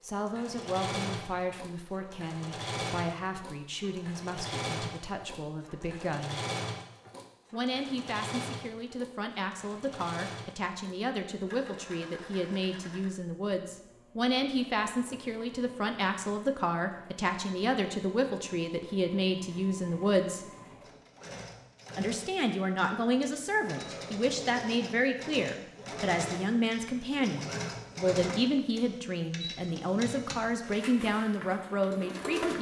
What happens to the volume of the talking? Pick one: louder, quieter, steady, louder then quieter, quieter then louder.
louder.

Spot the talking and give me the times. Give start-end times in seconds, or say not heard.
0.0-6.4, 7.5-20.4, 21.9-32.5.